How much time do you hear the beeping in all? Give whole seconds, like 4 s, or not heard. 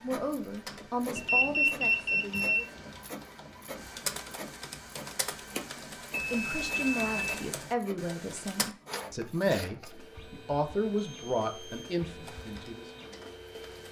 4 s.